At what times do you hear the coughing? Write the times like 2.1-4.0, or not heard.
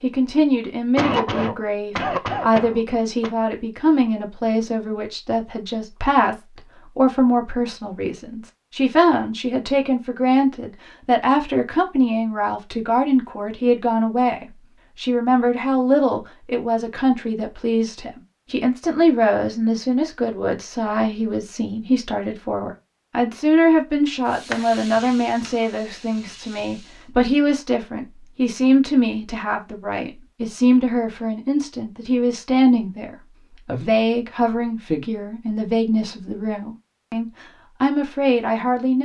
0.9-3.3.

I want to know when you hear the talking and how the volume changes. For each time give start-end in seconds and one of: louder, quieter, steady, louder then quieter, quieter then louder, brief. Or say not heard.
0.0-39.0 steady.